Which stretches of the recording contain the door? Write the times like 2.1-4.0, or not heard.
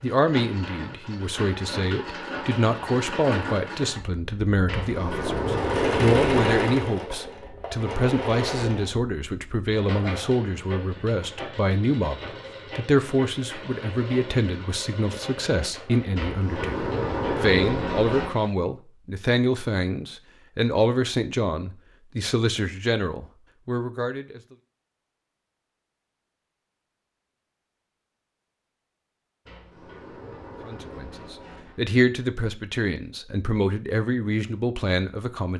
4.7-6.7, 16.1-18.3, 29.4-31.9.